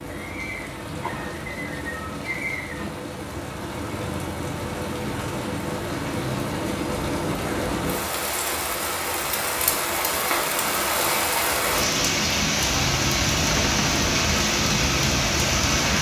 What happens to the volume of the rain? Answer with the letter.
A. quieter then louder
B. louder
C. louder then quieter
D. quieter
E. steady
B.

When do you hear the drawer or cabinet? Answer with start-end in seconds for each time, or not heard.
13.5-14.2.